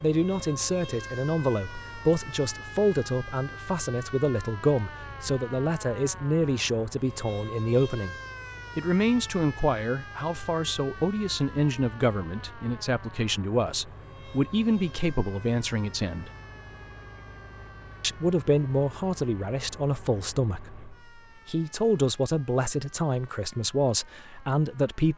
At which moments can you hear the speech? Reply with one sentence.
You can hear the speech from 0.0 to 16.3 s and from 18.0 to 25.1 s.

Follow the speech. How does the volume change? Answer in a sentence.
The loudness of the speech stays about the same.